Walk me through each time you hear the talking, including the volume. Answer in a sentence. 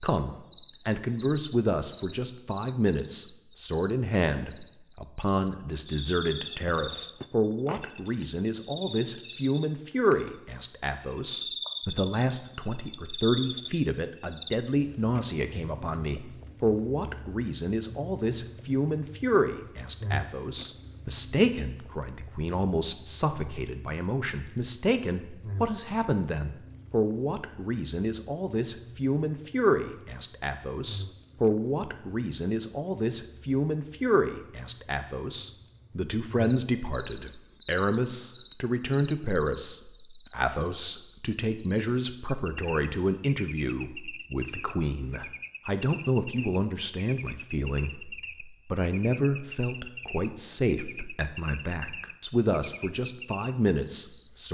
The talking can be heard from 0.0 to 54.5 s, at a steady volume.